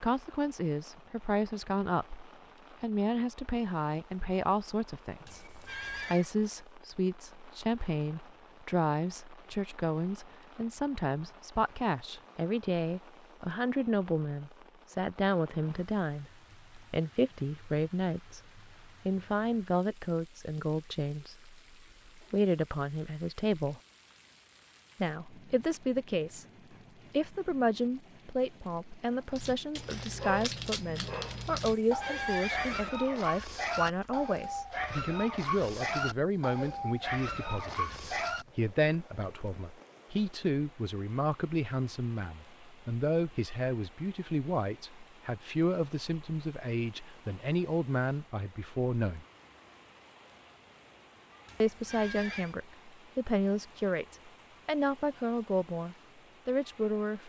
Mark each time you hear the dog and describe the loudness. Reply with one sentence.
The dog can be heard from 29.3 to 38.5 s, at a steady volume.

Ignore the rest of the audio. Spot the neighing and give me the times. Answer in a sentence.
You can hear the neighing from 5.2 to 6.3 s, from 31.6 to 32.9 s and from 51.5 to 52.5 s.